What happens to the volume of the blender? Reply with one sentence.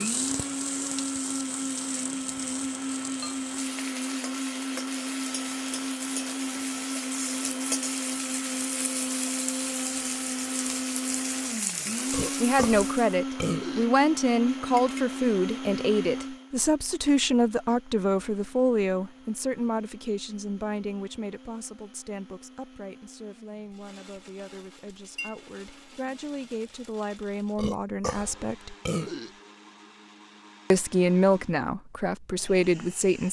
The loudness of the blender goes down.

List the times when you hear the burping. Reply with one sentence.
You can hear the burping from 12.1 to 13.8 s and from 27.6 to 29.3 s.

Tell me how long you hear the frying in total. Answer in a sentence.
The frying can be heard for 13 seconds in total.